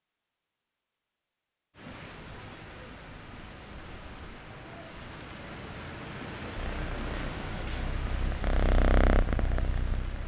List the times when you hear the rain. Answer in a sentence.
The rain can be heard from 1.8 to 10.2 s.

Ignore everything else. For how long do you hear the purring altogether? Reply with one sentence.
You can hear the purring for 4 seconds altogether.